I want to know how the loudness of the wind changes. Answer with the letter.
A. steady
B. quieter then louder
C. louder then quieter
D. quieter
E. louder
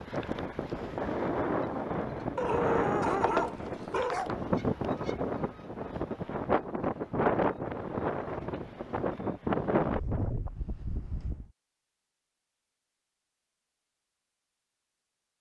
A.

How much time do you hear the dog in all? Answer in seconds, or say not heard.
2 s.